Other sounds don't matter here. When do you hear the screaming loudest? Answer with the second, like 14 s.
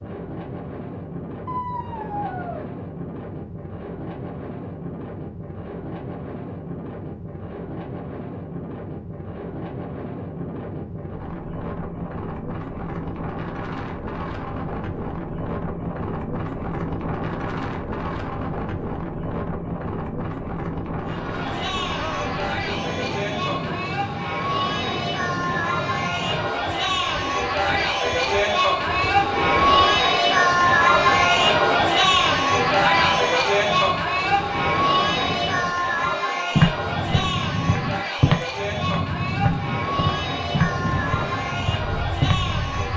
33 s.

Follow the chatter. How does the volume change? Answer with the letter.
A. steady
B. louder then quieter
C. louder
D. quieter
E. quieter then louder
B.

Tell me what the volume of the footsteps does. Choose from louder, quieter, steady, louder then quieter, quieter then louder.
louder then quieter.